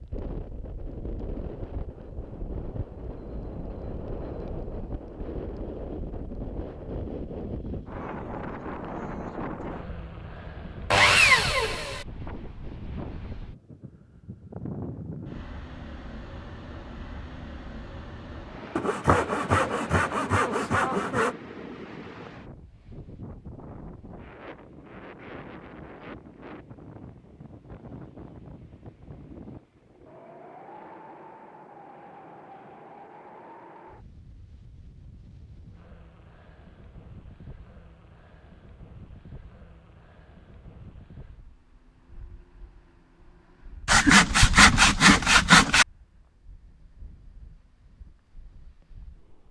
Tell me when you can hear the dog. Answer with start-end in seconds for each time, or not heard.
not heard.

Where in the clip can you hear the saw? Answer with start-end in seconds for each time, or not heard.
10.9-12.1, 18.8-21.4, 43.9-45.9.